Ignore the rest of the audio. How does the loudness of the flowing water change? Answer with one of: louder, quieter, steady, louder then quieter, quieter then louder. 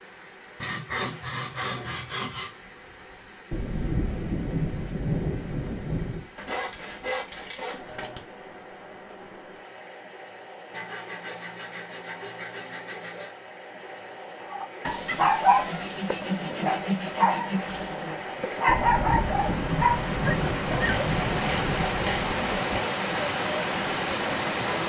louder.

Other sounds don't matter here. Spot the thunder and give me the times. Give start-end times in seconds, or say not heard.
3.5-6.2, 18.6-22.4.